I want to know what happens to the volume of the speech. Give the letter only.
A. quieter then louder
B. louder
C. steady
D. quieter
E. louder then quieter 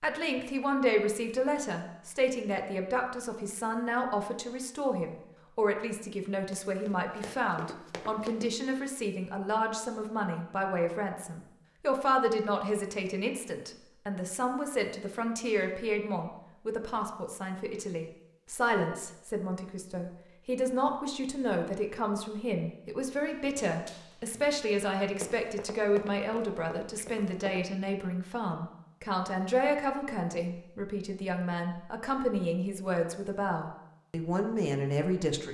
C.